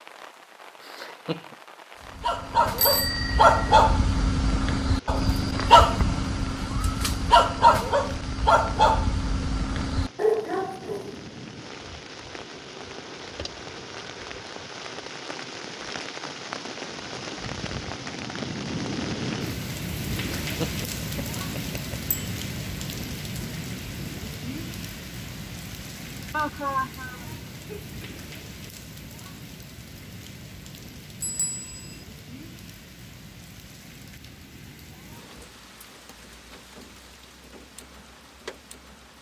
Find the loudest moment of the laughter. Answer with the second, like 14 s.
27 s.